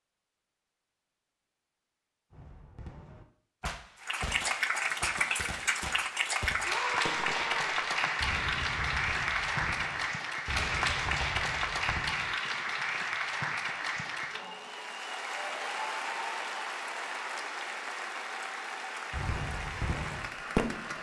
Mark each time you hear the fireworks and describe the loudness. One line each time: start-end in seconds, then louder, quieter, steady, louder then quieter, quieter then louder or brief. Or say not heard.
2.3-12.3 steady
19.1-20.9 brief.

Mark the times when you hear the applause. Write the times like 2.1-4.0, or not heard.
4.0-20.9.